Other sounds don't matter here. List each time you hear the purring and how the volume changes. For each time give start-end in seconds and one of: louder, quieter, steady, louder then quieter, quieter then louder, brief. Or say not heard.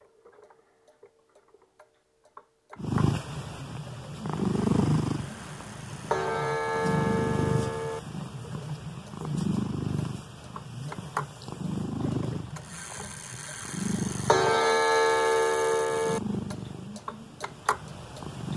2.8-18.5 quieter.